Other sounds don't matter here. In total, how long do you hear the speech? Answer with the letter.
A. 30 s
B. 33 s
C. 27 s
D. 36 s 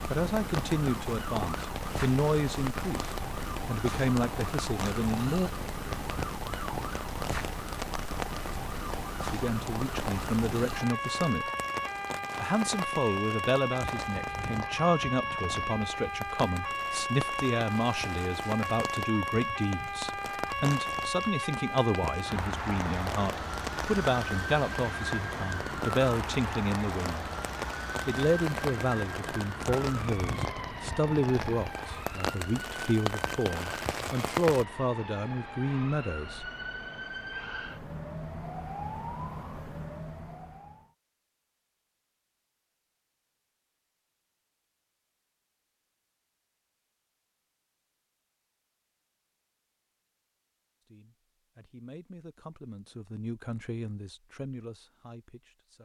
D.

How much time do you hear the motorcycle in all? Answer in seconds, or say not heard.
not heard.